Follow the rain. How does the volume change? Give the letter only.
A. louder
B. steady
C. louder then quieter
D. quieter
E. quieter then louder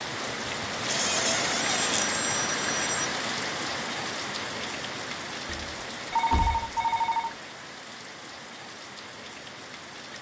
D.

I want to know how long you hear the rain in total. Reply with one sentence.
The rain can be heard for 10 seconds in total.